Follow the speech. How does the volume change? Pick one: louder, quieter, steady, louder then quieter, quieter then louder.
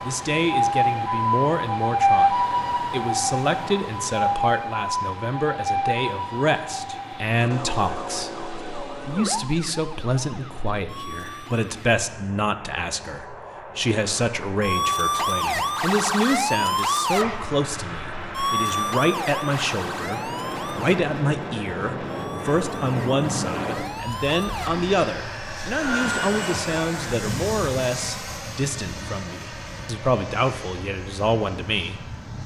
steady.